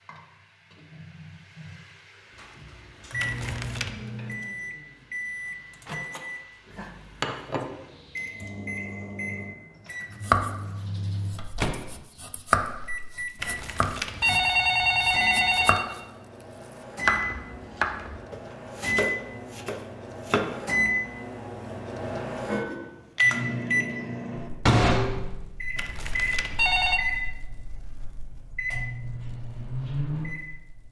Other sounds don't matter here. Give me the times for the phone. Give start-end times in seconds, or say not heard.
3.1-3.9, 13.4-15.9, 25.8-27.0.